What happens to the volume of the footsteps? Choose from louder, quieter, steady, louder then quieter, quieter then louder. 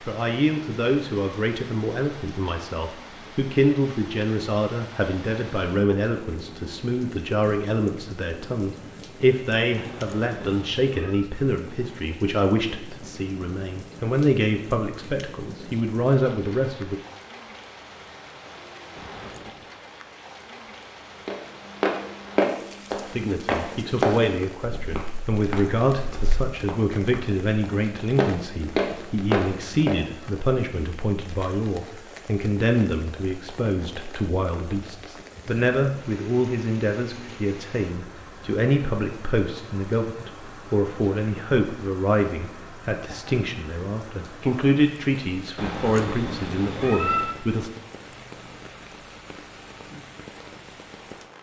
quieter then louder.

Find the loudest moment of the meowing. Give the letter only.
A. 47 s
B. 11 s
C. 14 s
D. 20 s
A.